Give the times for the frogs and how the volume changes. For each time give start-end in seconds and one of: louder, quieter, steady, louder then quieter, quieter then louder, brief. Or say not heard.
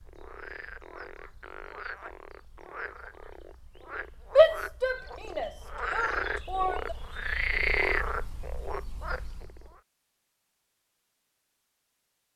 0.0-9.8 louder.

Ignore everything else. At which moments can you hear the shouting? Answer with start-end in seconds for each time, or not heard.
4.3-7.0.